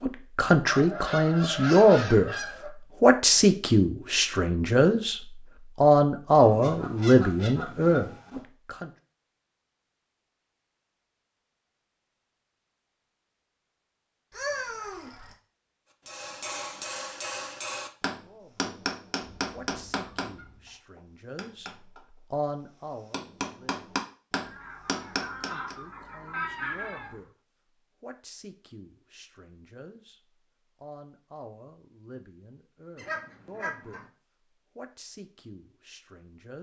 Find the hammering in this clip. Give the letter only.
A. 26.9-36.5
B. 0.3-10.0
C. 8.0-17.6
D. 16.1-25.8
D.